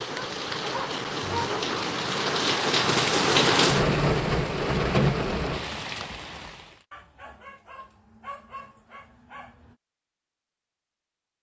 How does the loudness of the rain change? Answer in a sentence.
The volume of the rain goes up, then down.